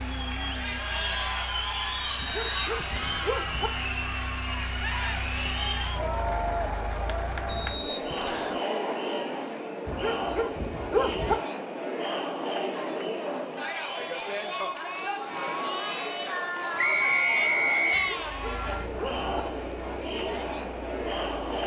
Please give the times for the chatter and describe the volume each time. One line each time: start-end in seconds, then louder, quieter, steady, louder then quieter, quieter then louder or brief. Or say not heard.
0.0-21.6 steady.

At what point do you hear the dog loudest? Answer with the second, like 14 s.
11 s.